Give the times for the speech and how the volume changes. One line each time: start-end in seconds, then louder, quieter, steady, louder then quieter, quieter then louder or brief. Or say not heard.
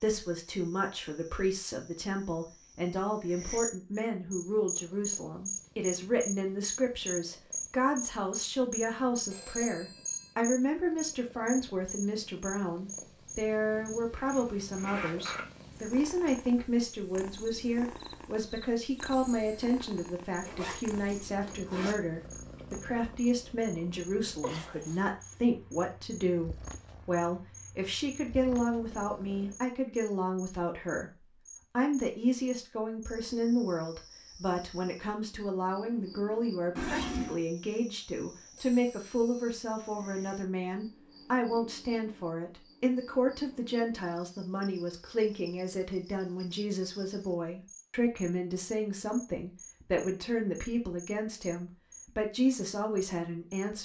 0.0-53.7 steady.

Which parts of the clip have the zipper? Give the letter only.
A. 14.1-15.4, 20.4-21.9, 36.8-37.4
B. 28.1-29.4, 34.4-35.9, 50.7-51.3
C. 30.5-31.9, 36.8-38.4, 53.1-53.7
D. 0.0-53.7
A.